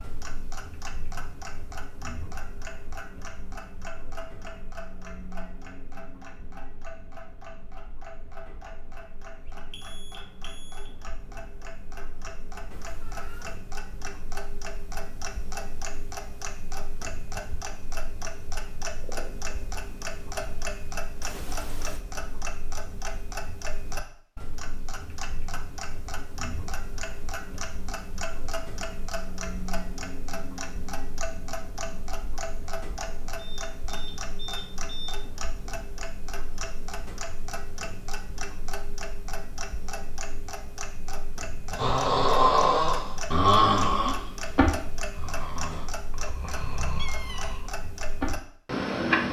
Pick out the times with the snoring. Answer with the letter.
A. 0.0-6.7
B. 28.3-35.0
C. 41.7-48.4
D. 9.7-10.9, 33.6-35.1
C.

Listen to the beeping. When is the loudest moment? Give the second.
35 s.